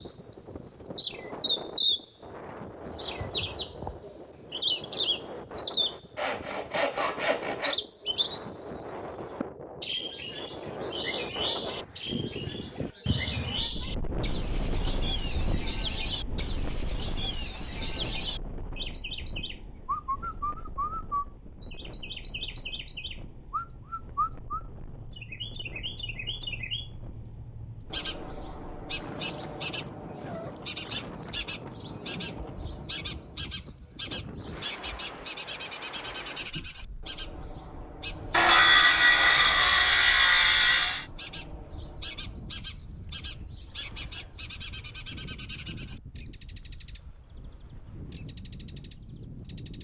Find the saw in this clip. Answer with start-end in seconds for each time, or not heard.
6.2-7.8, 38.3-41.0.